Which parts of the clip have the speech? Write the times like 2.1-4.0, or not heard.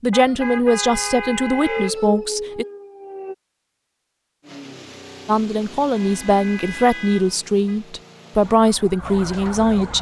0.0-2.6, 5.2-9.9.